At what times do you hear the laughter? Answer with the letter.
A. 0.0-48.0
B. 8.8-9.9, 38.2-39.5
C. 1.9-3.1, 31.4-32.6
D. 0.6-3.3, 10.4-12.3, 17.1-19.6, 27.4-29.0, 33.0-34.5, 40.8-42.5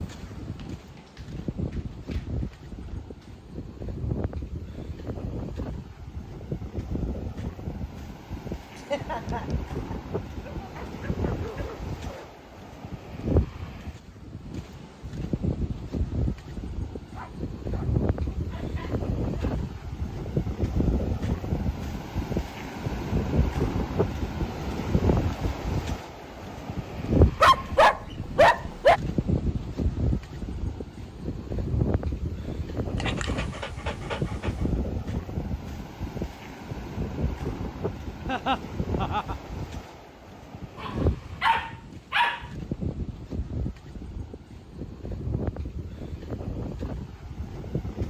B.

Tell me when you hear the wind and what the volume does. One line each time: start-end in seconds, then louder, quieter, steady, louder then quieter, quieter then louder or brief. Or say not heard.
0.0-48.0 louder then quieter.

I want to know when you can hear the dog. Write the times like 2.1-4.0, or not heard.
0.6-3.3, 10.4-12.3, 17.1-19.6, 27.4-29.0, 33.0-34.5, 40.8-42.5.